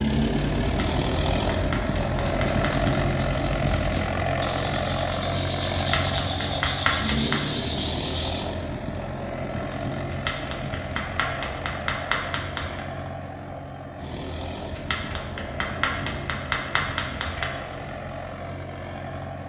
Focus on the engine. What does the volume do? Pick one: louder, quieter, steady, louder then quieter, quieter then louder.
quieter.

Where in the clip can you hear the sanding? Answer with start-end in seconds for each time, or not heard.
0.0-8.6.